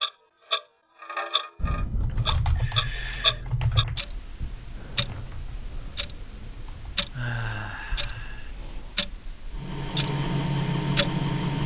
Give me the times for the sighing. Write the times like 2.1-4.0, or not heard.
2.0-3.5, 7.1-8.5.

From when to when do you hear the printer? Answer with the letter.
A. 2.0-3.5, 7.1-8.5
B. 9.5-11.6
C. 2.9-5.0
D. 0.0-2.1
B.